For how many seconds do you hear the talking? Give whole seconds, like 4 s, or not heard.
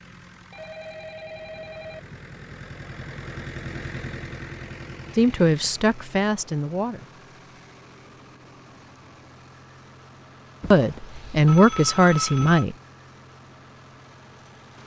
4 s.